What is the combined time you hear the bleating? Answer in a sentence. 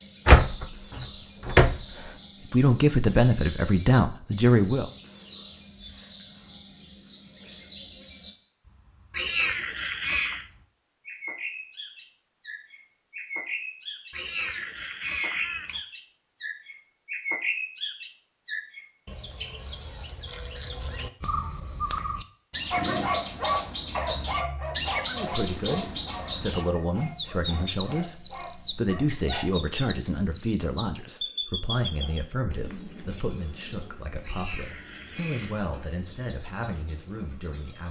You can't hear the bleating here.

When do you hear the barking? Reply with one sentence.
The barking can be heard from 22.7 to 29.4 s.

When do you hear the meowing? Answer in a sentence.
The meowing can be heard from 9.1 to 10.4 s, from 14.1 to 15.8 s and from 34.2 to 35.6 s.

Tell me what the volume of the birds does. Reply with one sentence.
The loudness of the birds goes up, then down.